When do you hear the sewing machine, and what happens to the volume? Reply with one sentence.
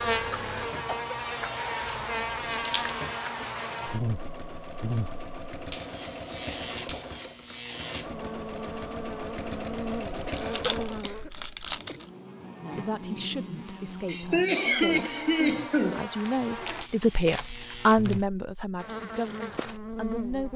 You can hear the sewing machine from 0.0 to 11.2 s, getting louder.